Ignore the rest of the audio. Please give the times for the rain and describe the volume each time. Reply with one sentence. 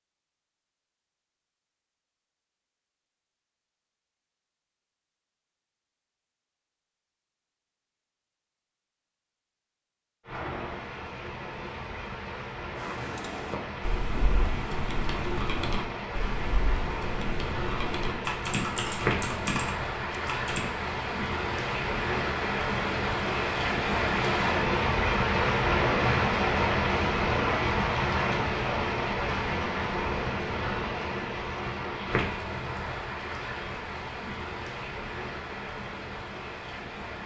You can hear the rain from 10.2 to 37.2 s, getting louder then quieter.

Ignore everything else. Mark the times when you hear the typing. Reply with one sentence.
You can hear the typing from 12.8 to 20.6 s.